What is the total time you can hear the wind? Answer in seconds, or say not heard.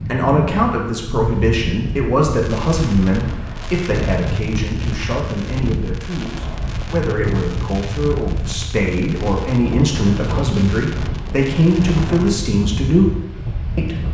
14 s.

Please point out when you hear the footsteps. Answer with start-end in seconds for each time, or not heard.
not heard.